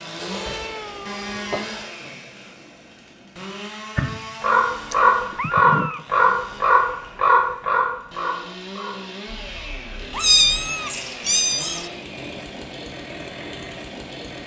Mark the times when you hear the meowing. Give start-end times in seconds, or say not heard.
0.1-1.9, 4.9-6.0, 10.1-11.8.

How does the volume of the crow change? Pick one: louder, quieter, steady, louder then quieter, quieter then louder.
quieter.